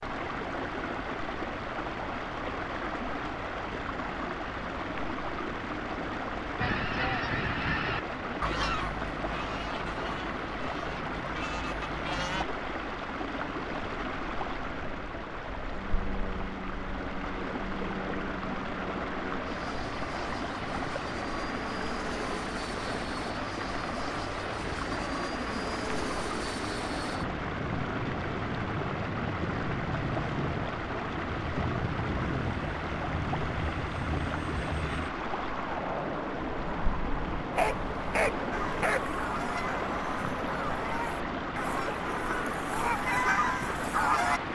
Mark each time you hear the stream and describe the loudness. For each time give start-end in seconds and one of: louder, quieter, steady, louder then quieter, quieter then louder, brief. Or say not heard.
0.0-44.5 steady.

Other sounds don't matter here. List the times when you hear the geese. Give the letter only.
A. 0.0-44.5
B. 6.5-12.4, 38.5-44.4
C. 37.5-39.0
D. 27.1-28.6
B.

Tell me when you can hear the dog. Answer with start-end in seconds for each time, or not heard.
37.5-39.0.